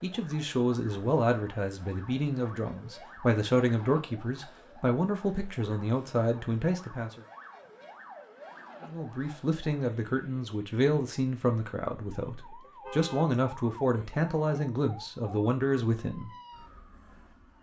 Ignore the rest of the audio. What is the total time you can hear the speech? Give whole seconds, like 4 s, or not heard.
15 s.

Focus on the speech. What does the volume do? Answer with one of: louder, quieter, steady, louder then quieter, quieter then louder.
steady.